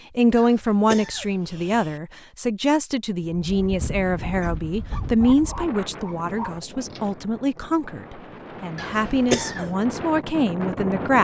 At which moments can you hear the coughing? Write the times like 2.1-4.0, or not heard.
0.3-2.0, 8.8-9.7.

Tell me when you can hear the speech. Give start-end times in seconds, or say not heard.
0.1-11.2.